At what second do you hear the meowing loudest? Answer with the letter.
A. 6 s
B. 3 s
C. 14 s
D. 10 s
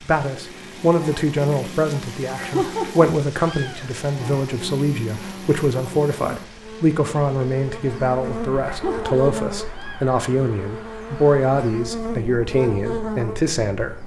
B.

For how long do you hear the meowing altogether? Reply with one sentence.
The meowing can be heard for 3 seconds in total.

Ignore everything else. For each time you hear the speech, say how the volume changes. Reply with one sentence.
You can hear the speech from 0.0 to 14.0 s, at a steady volume.